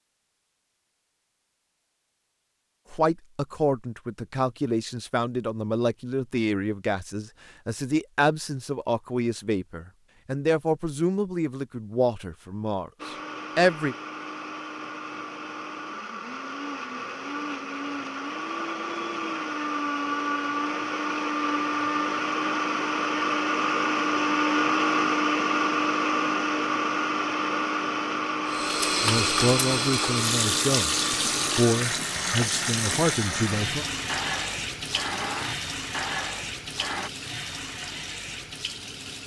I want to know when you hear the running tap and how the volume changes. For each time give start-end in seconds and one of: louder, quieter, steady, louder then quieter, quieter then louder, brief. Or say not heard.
28.4-39.2 quieter.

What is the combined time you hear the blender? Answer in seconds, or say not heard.
24 s.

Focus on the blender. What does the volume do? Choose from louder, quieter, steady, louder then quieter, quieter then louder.
louder then quieter.